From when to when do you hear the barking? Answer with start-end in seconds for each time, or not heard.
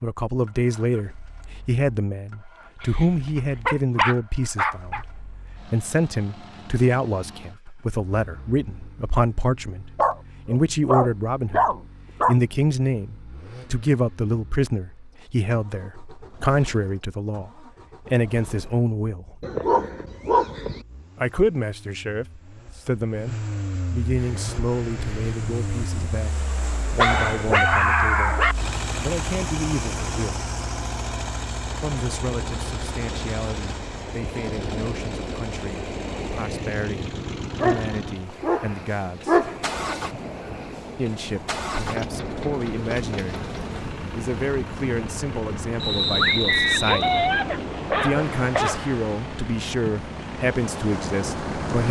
2.8-5.0, 9.9-12.4, 19.4-20.9, 26.9-28.6, 37.5-39.6, 46.2-49.0.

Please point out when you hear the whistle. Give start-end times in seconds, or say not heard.
45.8-47.3.